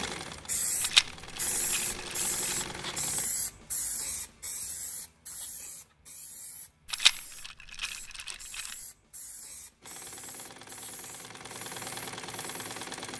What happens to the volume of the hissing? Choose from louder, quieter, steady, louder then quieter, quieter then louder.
quieter.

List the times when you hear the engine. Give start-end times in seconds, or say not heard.
0.0-3.3, 9.8-13.1.